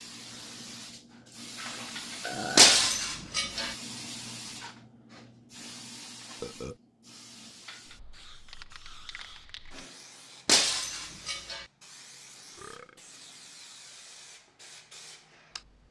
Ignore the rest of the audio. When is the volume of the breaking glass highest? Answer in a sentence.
The loudest moment of the breaking glass is at 3 seconds.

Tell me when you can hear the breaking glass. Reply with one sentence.
The breaking glass can be heard from 2.5 to 3.8 s and from 10.4 to 11.7 s.